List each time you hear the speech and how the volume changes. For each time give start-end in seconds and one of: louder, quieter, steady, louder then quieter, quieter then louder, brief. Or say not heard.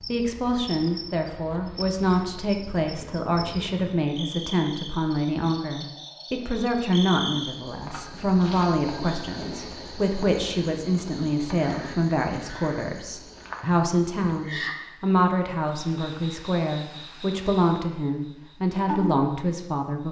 0.0-20.0 steady.